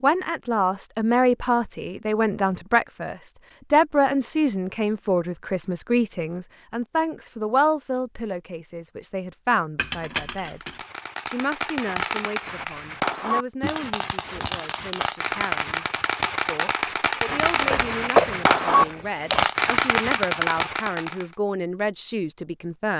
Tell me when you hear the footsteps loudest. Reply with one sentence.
The volume of the footsteps peaks at 18 seconds.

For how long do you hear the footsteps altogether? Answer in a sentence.
You can hear the footsteps for 2 seconds altogether.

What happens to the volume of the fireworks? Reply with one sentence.
The volume of the fireworks goes up.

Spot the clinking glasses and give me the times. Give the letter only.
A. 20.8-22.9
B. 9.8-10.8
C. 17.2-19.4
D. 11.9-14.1
B.